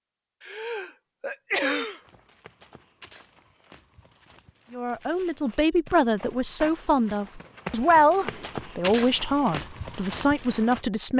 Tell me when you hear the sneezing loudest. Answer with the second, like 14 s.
2 s.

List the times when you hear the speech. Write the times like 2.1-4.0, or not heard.
4.7-11.1.